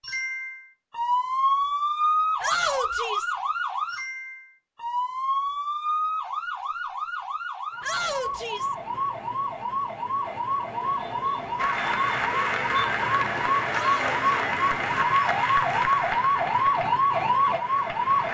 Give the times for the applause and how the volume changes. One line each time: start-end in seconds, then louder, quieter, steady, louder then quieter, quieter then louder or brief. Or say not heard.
11.6-18.2 quieter.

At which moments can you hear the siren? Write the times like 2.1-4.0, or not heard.
0.0-18.2.